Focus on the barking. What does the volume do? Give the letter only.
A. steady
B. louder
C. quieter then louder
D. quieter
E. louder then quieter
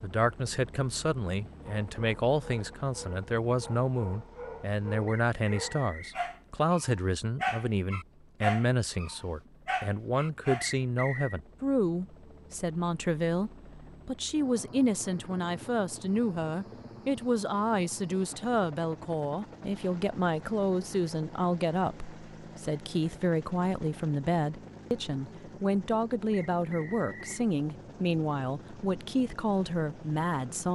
E.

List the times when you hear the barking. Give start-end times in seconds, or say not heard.
1.6-10.7.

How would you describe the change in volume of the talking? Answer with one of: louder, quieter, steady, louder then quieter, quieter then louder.
steady.